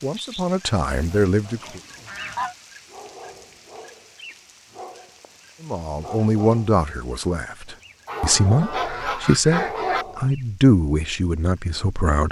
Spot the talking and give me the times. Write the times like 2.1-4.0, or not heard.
0.0-1.8, 5.6-12.2.